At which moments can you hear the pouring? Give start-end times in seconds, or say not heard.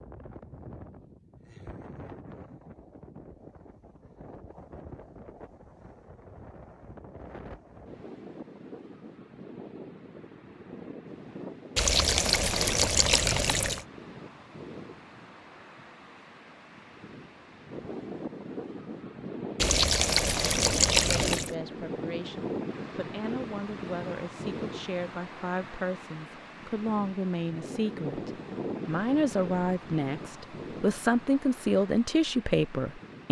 11.8-13.8, 19.6-21.6.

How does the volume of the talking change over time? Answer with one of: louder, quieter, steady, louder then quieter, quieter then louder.
louder.